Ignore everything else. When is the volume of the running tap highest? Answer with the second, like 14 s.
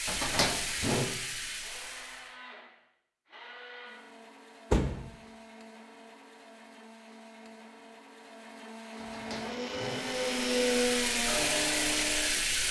12 s.